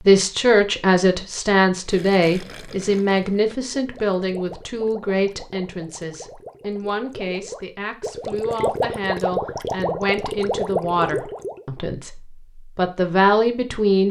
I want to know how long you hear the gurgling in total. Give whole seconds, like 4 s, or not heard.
10 s.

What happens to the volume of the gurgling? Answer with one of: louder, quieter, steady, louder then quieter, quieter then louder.
louder.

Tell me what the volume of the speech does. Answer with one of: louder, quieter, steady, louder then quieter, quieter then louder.
quieter then louder.